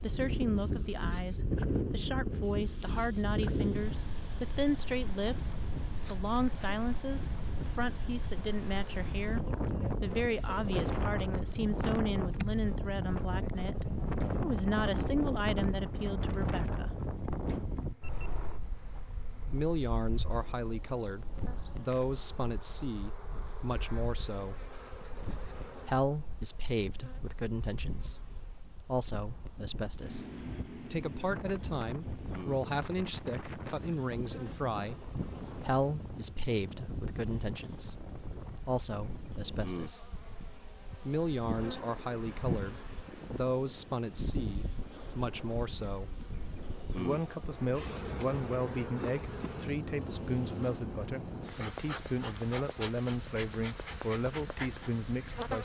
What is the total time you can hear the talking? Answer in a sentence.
The talking can be heard for 50 seconds in total.